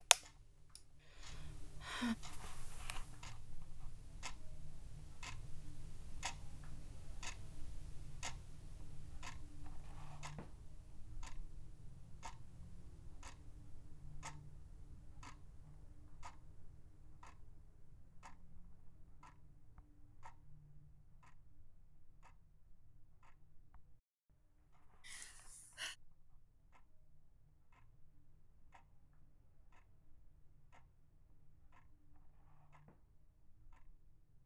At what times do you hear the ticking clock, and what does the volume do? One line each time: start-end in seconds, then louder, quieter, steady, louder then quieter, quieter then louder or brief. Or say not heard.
0.0-34.4 quieter.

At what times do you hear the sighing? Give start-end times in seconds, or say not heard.
0.8-2.1, 25.0-25.9.